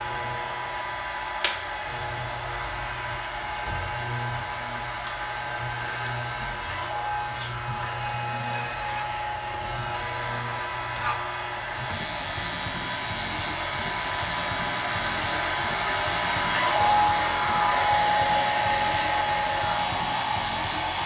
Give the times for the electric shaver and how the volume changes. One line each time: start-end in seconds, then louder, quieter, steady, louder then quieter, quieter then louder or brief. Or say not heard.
0.0-21.0 steady.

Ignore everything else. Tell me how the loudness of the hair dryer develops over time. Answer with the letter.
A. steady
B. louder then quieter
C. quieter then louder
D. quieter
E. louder
E.